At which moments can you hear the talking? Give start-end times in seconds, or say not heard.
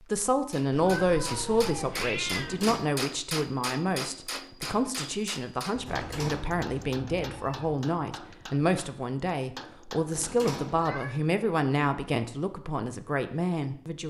0.1-14.0.